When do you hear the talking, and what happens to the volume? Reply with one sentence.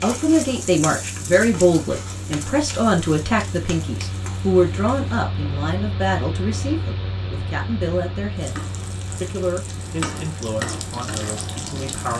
You can hear the talking from 0.0 to 8.6 s, getting quieter; and briefly from 9.2 to 12.1 s.